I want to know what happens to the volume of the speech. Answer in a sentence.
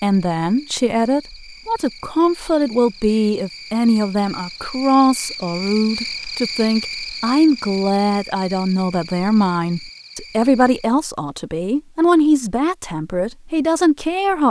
The volume of the speech stays about the same.